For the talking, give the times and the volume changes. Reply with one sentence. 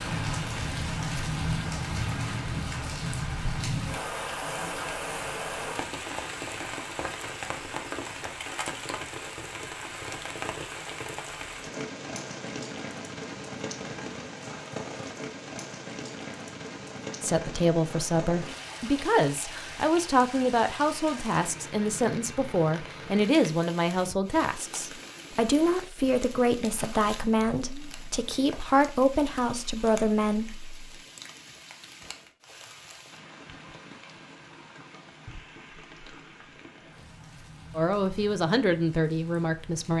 You can hear the talking from 17.2 to 30.8 s, at a steady volume; and briefly from 37.8 to 39.9 s.